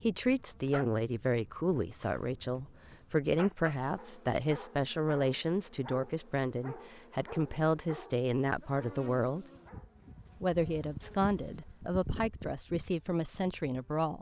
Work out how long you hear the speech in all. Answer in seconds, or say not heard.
13 s.